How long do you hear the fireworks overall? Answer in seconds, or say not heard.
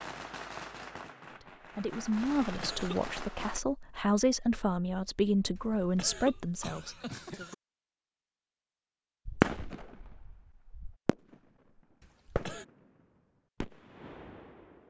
9 s.